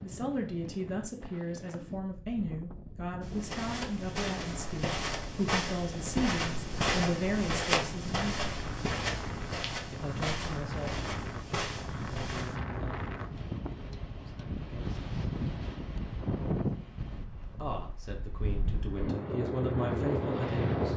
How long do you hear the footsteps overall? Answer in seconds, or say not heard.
9 s.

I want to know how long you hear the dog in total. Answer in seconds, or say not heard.
not heard.